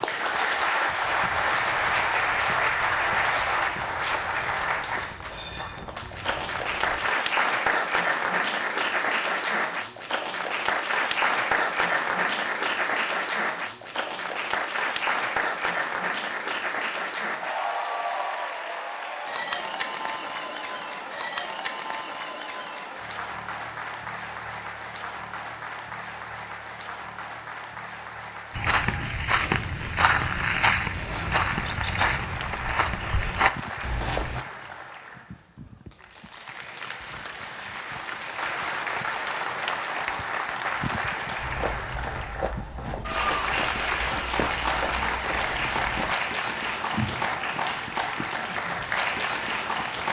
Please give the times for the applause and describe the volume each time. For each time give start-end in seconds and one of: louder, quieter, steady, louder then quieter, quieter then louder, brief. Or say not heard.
0.0-50.0 quieter then louder.